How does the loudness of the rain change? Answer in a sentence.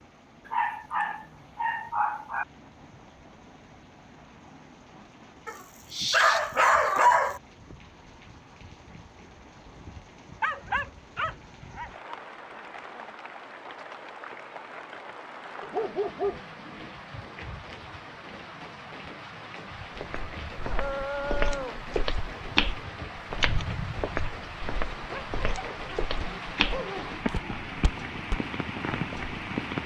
The volume of the rain goes up.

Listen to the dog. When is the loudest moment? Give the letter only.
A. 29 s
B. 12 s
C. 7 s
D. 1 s
C.